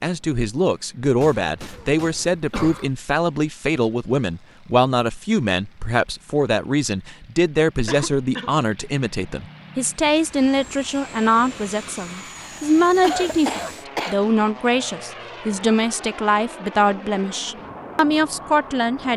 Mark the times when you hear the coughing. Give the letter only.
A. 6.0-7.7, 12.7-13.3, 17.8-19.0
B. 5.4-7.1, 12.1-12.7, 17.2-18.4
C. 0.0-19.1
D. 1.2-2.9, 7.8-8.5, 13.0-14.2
D.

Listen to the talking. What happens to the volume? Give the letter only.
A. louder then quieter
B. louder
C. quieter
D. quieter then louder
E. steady
E.